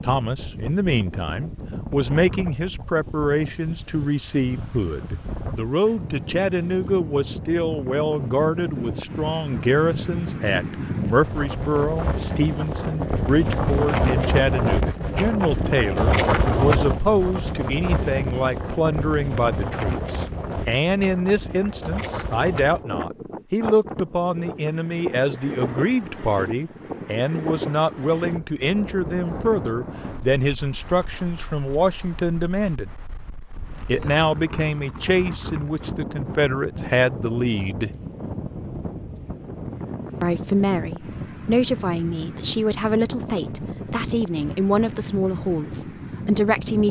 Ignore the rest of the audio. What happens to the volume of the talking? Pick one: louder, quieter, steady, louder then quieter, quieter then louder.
steady.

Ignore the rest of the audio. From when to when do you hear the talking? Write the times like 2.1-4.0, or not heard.
0.0-32.9, 33.9-37.9, 40.2-46.8.